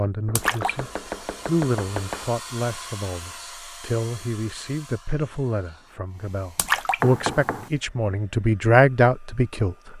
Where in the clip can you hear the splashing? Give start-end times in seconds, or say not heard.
0.3-0.8, 6.5-7.0.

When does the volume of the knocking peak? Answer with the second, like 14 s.
7 s.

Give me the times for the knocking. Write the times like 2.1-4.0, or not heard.
0.2-2.3, 7.0-7.7.